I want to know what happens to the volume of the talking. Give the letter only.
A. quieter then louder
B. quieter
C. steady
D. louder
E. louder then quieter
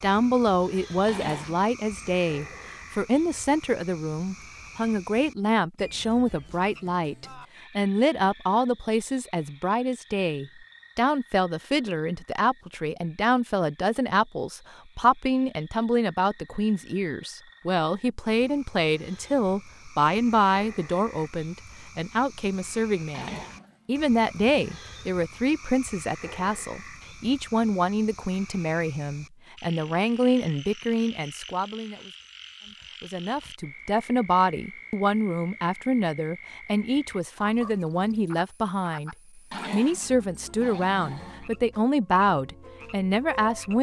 C.